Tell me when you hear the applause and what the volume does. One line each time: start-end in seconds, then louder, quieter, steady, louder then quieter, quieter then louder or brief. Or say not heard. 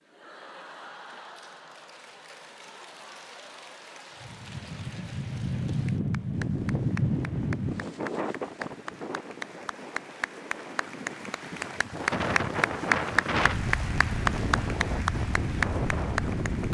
0.0-16.6 louder.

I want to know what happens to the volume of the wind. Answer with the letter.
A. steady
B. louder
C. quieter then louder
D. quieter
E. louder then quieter
C.